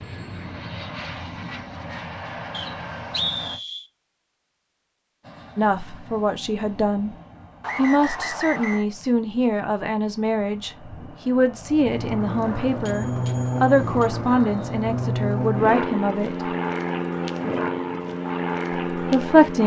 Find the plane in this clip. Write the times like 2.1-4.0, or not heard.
0.0-3.6, 5.2-19.6.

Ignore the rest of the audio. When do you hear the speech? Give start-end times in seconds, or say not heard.
5.5-7.2, 7.8-16.5, 18.9-19.6.